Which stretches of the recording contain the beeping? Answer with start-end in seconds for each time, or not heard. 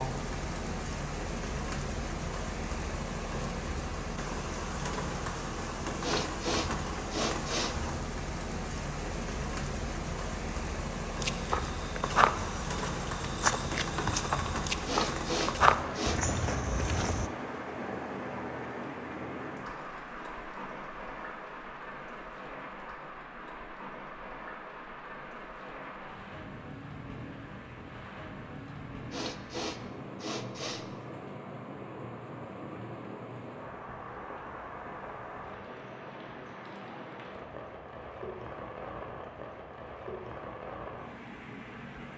not heard.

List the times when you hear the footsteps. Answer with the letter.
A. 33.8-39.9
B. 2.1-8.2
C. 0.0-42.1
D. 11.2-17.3
D.